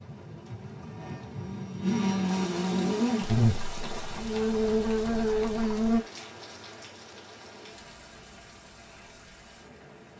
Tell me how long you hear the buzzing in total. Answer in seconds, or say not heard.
6 s.